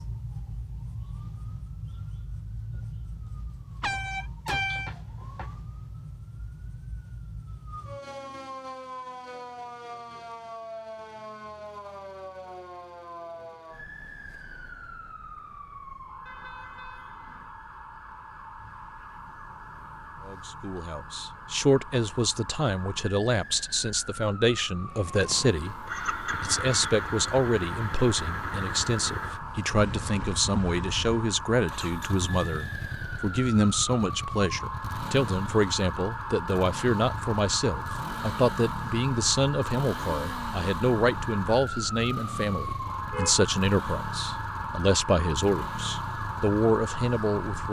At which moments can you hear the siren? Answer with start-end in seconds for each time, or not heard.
0.0-47.6.